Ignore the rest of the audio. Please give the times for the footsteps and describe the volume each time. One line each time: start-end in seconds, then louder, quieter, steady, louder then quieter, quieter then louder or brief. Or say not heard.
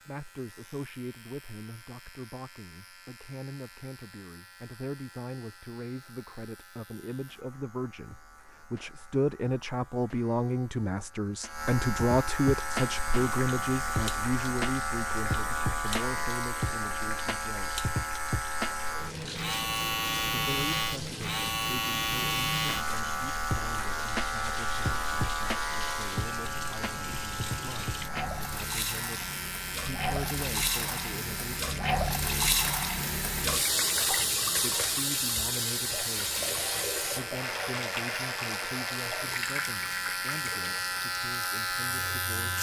not heard.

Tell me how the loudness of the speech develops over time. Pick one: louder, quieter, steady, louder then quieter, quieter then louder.
louder then quieter.